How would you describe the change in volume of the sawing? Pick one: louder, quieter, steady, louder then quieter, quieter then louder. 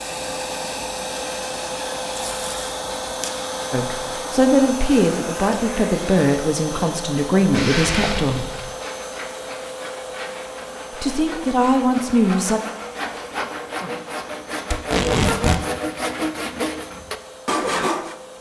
louder.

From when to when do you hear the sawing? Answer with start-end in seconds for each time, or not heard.
8.6-18.1.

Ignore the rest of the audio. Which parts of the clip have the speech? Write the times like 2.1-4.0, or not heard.
3.7-8.5, 11.0-12.6.